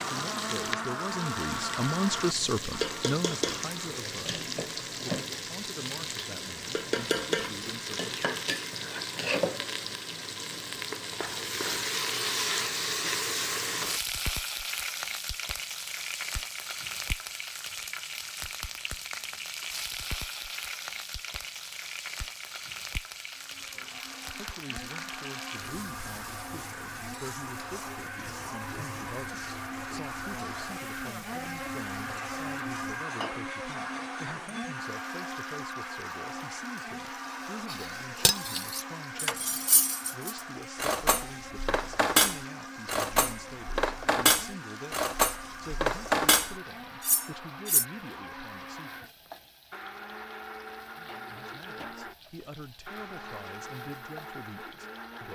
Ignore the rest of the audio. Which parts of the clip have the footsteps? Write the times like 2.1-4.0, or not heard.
not heard.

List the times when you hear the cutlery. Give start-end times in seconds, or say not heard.
37.7-47.9.